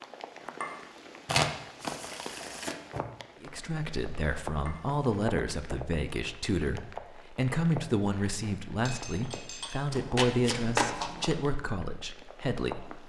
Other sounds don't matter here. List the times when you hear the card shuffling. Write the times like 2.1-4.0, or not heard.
1.2-3.0, 9.9-11.3.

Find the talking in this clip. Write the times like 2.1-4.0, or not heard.
3.4-13.0.